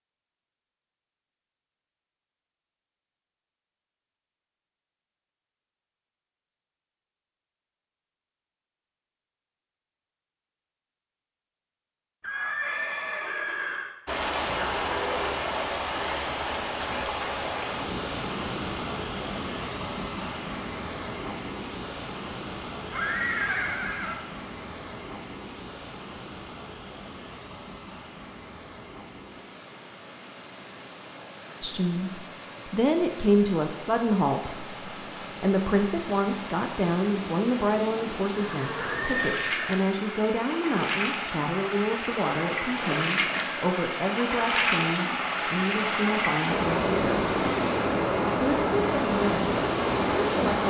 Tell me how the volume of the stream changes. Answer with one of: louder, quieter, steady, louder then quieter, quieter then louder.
quieter then louder.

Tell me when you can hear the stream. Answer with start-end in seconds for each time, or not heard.
14.1-50.6.